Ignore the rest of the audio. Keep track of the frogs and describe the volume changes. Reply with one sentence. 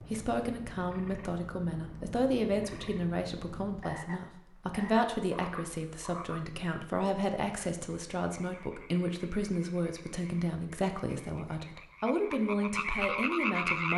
The volume of the frogs goes down, then up.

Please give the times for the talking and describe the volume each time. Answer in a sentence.
You can hear the talking from 0.0 to 13.9 s, at a steady volume.